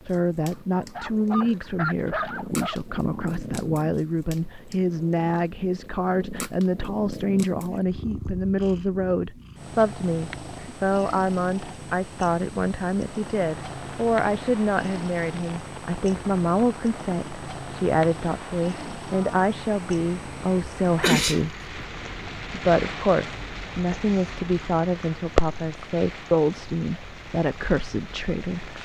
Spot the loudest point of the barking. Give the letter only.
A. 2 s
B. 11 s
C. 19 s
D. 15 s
A.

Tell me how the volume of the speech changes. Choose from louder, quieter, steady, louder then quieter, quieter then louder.
steady.